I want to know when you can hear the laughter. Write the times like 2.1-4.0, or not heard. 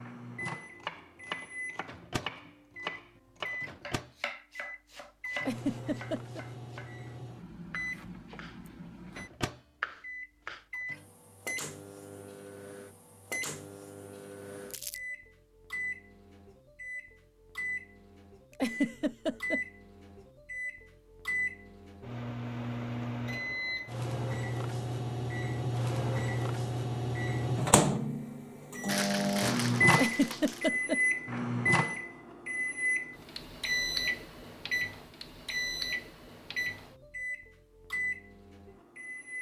5.5-6.5, 18.6-19.6, 29.9-31.0.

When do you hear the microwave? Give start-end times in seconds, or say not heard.
0.0-39.3.